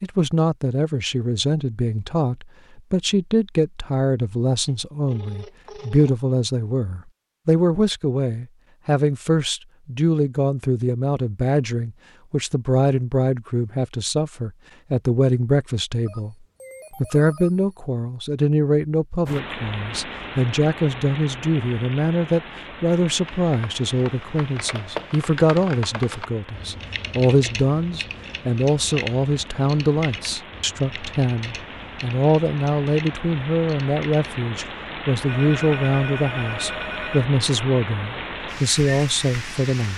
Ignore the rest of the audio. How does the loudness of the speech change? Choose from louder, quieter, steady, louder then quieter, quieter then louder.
steady.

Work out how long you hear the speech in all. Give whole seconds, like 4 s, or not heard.
40 s.